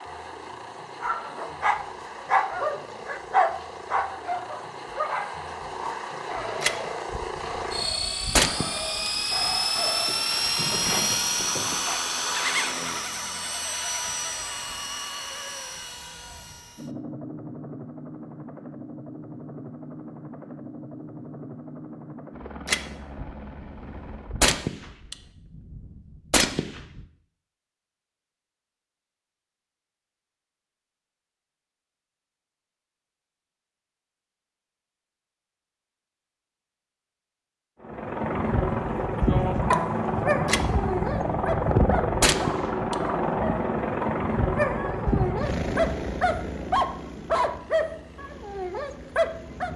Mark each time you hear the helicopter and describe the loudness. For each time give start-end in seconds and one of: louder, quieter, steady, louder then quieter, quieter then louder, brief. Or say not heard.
0.0-24.6 louder then quieter
37.8-49.7 quieter.